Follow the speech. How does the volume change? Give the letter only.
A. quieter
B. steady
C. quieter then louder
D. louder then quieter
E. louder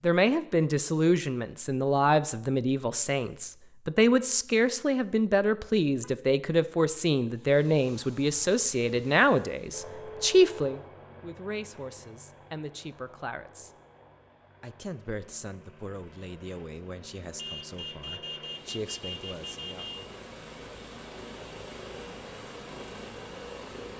A.